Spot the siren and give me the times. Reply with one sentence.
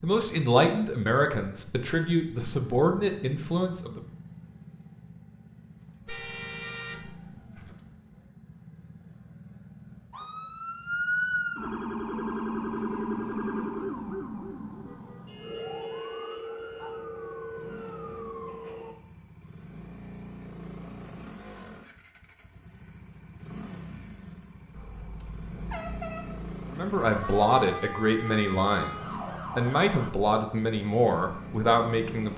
You can hear the siren from 10.1 to 18.9 s and from 27.0 to 30.1 s.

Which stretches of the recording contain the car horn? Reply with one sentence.
You can hear the car horn from 6.0 to 7.7 s, from 15.2 to 16.9 s and from 24.7 to 26.5 s.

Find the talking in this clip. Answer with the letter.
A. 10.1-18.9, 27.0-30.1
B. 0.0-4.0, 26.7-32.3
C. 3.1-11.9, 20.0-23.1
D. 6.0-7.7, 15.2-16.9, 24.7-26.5
B.